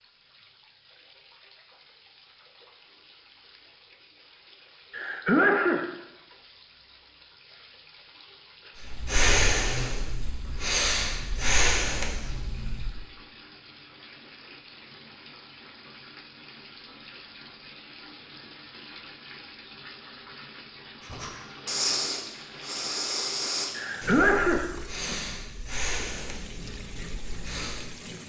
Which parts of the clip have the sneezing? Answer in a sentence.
You can hear the sneezing from 4.9 to 5.9 s and from 23.8 to 24.7 s.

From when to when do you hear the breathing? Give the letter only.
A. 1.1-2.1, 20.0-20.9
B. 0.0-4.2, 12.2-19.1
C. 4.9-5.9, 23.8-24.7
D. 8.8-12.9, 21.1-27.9
D.